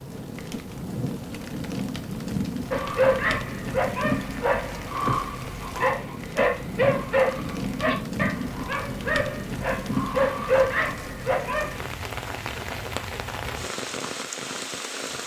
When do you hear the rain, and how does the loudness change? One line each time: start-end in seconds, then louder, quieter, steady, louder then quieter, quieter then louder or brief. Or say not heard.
0.0-15.2 steady.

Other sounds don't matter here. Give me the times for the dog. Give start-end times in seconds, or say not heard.
2.7-11.8.